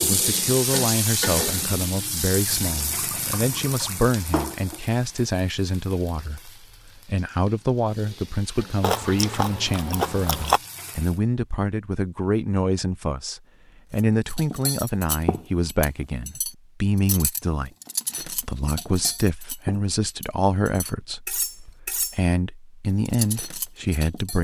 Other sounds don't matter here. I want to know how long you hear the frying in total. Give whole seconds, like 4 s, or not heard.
11 s.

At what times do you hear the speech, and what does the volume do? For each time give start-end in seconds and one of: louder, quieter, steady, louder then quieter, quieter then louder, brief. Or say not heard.
0.0-24.3 steady.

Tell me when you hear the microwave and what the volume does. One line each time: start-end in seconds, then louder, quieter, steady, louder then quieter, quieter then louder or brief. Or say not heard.
not heard.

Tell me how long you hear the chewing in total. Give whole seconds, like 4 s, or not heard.
2 s.